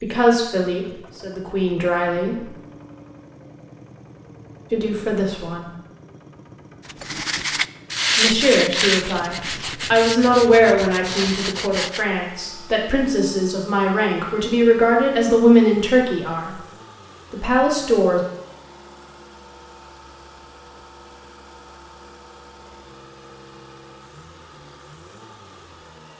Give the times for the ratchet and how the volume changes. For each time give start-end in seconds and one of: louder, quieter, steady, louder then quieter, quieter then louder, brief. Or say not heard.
not heard.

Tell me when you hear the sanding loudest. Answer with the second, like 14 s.
8 s.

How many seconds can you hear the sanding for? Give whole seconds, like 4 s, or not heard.
5 s.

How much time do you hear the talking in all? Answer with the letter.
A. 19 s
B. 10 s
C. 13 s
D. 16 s
C.